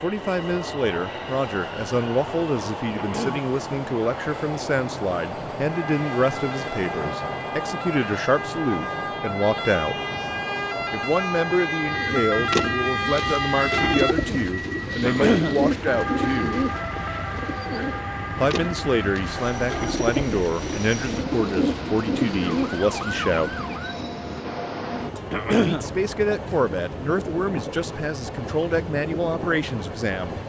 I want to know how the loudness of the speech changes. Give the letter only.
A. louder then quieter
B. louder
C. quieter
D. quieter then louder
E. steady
E.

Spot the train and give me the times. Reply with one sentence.
You can hear the train from 0.0 to 30.4 s.